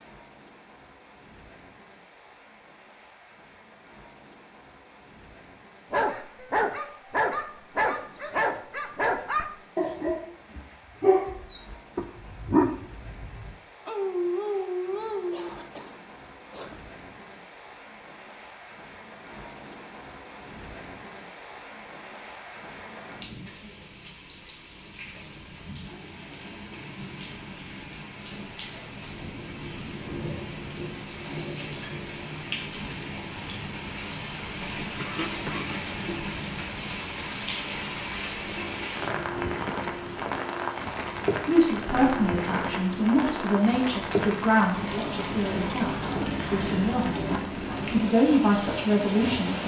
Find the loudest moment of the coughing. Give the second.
35 s.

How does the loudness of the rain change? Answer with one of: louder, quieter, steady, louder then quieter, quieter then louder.
louder.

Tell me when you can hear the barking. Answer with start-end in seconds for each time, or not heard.
5.9-15.5.